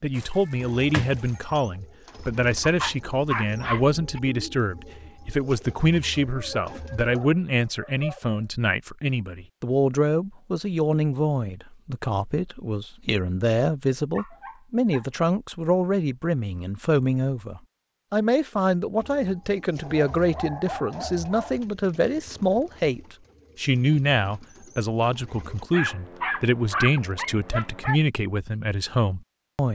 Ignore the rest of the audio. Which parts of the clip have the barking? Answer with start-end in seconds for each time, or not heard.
2.6-4.2, 6.2-8.4, 14.1-15.1, 19.8-21.6, 25.7-28.0.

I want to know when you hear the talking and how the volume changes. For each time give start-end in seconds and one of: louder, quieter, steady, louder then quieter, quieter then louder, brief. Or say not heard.
0.0-29.7 steady.